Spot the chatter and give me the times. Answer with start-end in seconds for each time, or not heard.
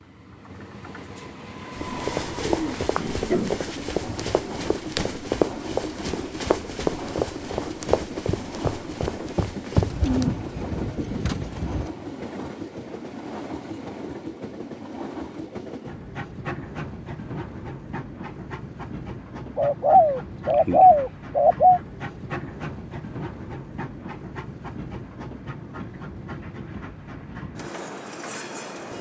not heard.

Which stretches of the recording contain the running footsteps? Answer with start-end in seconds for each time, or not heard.
1.8-10.2.